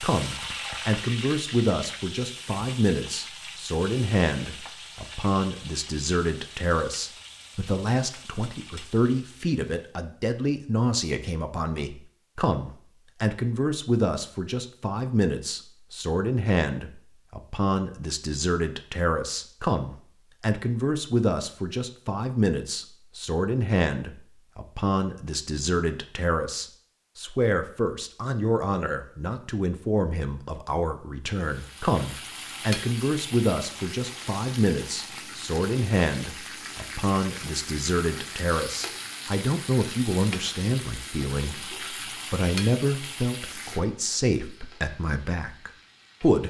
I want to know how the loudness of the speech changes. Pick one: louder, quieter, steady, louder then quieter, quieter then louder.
steady.